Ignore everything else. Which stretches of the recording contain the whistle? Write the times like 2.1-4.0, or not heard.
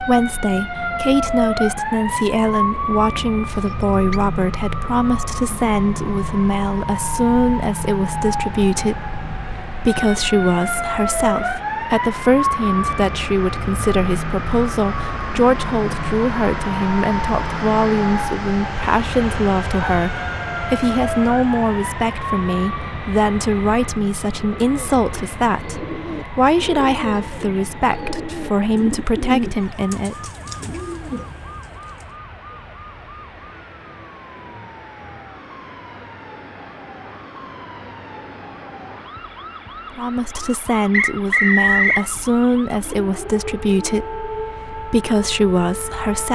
3.5-4.2, 40.9-42.0.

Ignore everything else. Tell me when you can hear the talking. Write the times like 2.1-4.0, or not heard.
0.0-30.3, 40.0-46.3.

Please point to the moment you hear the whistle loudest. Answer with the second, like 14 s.
42 s.